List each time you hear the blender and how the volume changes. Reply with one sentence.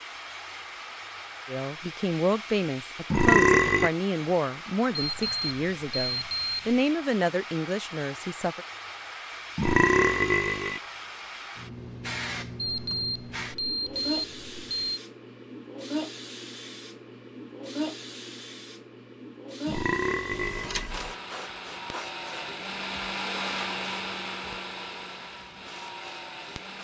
The blender can be heard from 20.9 to 26.7 s, getting louder then quieter.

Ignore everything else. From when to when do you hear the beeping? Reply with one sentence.
The beeping can be heard from 5.0 to 6.8 s, from 12.6 to 15.0 s and from 20.3 to 21.1 s.